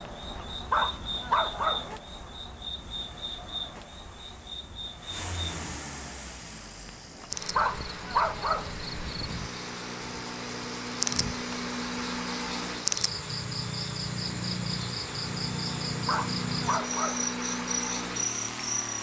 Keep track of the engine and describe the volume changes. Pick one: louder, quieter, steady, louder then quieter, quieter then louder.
louder.